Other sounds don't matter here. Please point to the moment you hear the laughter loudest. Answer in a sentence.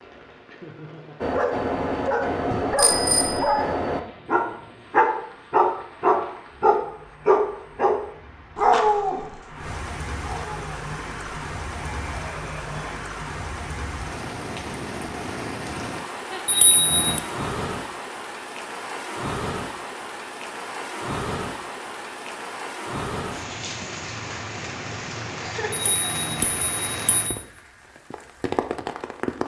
The volume of the laughter peaks at 26 seconds.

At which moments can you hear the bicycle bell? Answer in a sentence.
You can hear the bicycle bell from 2.5 to 3.5 s, from 16.4 to 17.2 s and from 25.9 to 27.4 s.